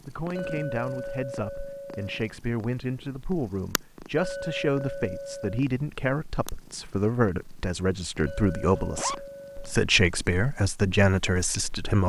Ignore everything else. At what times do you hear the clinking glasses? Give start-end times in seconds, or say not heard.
0.3-2.2, 4.2-5.7, 8.2-9.8.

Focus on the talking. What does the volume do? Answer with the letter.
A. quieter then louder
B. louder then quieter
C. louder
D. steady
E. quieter
C.